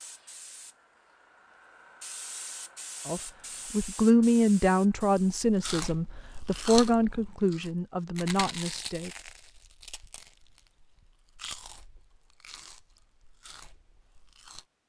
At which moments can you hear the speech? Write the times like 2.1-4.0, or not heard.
3.0-9.1.